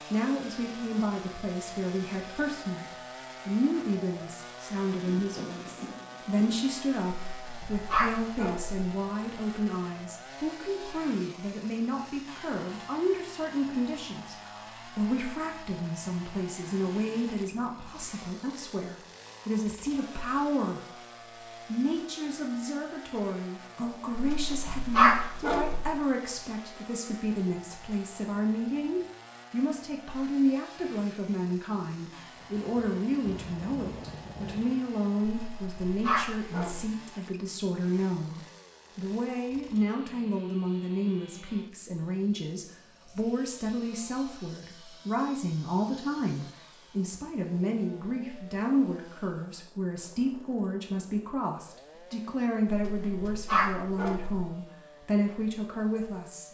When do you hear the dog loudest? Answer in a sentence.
The volume of the dog peaks at 25 seconds.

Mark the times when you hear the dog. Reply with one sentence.
The dog can be heard from 7.2 to 8.8 s, from 24.1 to 25.9 s, from 35.4 to 36.9 s and from 52.6 to 54.5 s.